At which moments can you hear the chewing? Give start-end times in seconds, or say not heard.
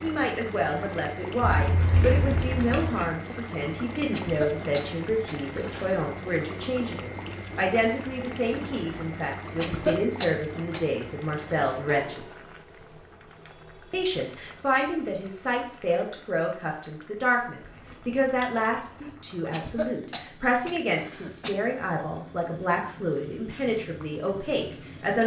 1.4-3.1, 17.6-19.1.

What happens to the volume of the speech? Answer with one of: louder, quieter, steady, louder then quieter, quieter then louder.
steady.